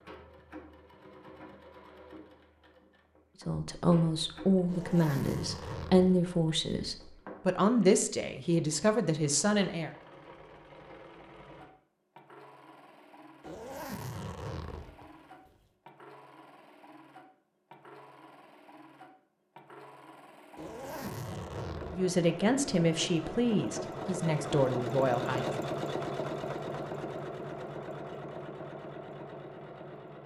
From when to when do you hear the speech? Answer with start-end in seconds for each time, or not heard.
3.5-9.9, 21.9-25.5.